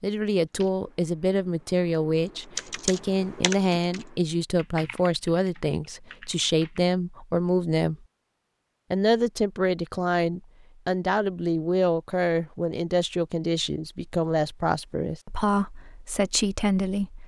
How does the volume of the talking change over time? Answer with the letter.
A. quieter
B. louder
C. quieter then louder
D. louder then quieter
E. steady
E.